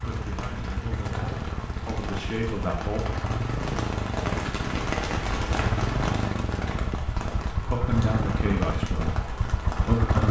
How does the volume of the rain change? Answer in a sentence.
The volume of the rain goes up, then down.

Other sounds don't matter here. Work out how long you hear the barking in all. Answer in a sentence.
You can't hear the barking here.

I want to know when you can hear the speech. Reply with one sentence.
The speech can be heard from 0.0 to 3.0 s and from 7.7 to 10.2 s.